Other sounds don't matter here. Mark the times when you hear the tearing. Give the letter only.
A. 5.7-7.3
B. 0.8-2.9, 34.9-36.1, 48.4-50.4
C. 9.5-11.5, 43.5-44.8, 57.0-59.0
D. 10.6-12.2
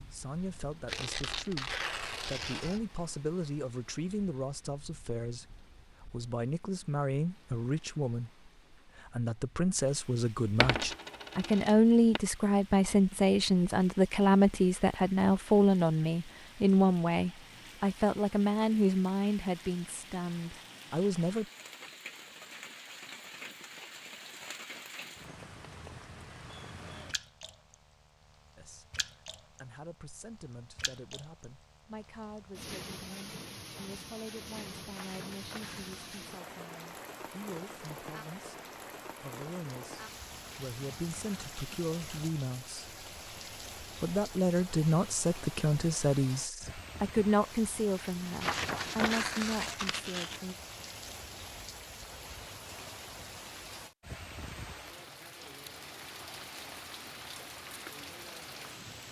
B.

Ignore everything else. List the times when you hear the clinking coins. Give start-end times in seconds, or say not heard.
10.6-12.2.